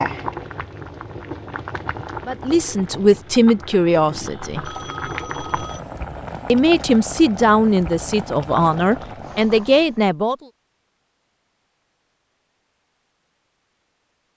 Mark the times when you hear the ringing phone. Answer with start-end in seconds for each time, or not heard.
4.5-5.8.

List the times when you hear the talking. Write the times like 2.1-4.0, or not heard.
2.2-4.7, 6.5-10.3.